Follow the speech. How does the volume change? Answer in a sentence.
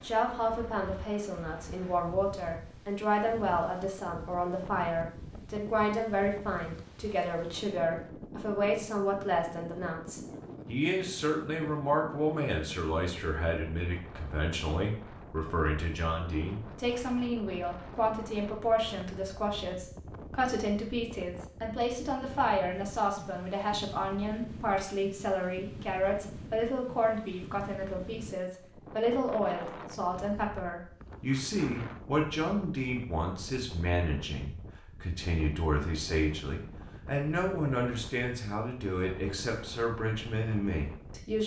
The volume of the speech stays about the same.